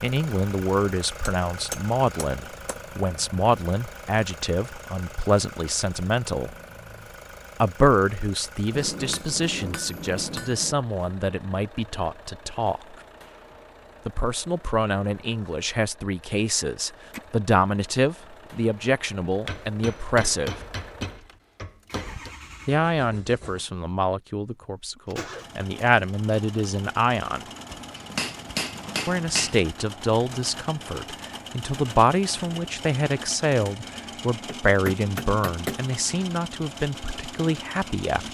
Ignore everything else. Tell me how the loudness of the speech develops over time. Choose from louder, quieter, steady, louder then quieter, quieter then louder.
steady.